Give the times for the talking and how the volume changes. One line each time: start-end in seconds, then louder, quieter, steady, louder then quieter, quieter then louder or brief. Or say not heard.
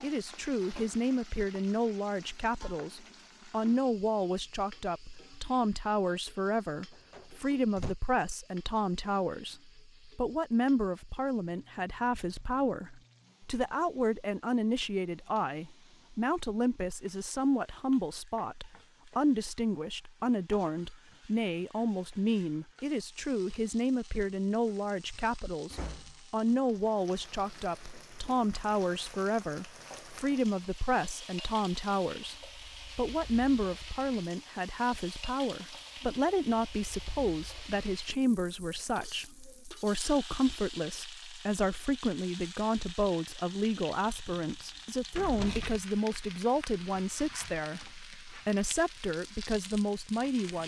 0.0-50.6 steady.